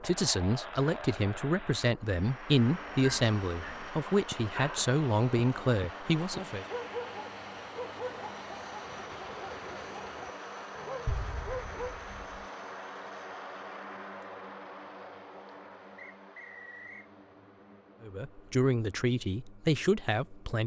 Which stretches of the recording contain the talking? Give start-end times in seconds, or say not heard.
0.0-6.7, 18.0-20.6.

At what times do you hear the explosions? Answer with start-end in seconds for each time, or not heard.
11.1-12.4.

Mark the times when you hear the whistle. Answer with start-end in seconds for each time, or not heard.
15.9-17.1.